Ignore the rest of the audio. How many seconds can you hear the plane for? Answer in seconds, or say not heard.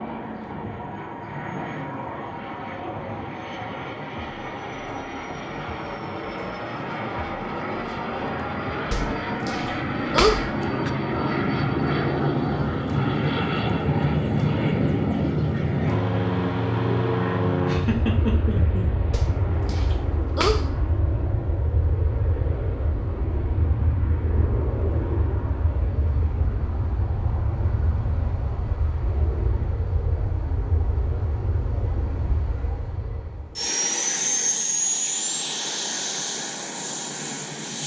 38 s.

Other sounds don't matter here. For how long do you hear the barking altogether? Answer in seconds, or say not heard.
4 s.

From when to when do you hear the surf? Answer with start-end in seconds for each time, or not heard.
not heard.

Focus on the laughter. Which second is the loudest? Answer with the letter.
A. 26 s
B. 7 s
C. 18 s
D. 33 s
C.